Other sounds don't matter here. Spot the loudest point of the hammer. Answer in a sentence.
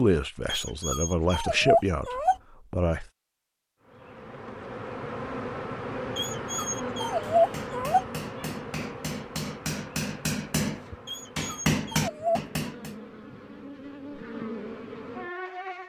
The loudest moment of the hammer is at 12 seconds.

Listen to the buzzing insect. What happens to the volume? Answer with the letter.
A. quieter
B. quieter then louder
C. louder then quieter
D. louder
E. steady
B.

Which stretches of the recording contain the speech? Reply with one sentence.
You can hear the speech from 0.0 to 3.0 s.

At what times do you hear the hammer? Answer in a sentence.
The hammer can be heard from 7.3 to 12.9 s.